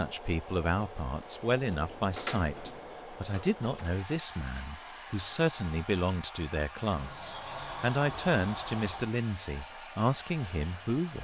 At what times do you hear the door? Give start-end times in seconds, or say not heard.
1.5-3.9, 7.0-9.2.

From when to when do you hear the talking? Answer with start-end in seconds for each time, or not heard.
0.0-11.1.